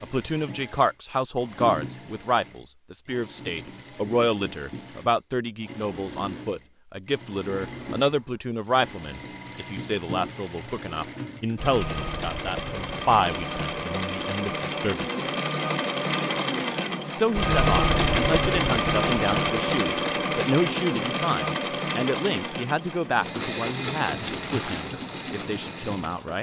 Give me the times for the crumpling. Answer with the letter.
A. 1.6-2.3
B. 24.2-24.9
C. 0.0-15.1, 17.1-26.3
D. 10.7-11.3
B.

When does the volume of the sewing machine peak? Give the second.
18 s.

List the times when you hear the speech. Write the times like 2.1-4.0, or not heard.
0.0-15.1, 17.1-26.3.